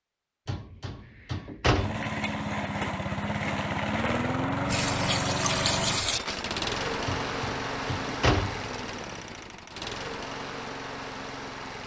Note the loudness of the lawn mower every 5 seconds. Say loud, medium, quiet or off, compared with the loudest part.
loud, loud, medium.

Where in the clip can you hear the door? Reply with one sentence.
The door can be heard from 0.5 to 2.1 s and from 7.2 to 8.7 s.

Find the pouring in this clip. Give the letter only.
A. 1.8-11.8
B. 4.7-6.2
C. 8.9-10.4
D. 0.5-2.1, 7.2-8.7
B.